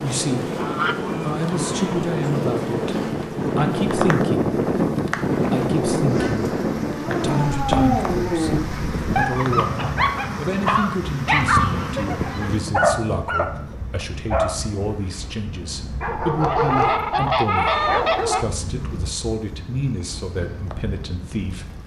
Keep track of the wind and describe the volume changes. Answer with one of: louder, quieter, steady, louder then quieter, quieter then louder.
quieter.